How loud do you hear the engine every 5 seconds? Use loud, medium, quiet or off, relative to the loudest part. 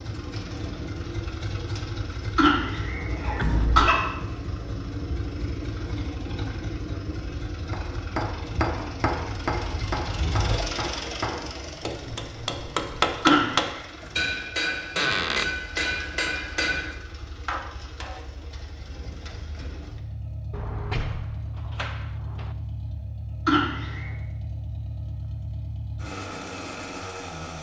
loud, loud, loud, medium, loud, loud.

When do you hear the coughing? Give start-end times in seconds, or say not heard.
2.4-4.0, 13.2-13.8, 23.4-24.1.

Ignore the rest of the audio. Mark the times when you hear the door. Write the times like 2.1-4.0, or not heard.
3.4-3.9, 14.9-15.5, 20.5-22.6.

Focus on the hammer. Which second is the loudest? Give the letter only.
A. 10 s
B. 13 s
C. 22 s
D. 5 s
B.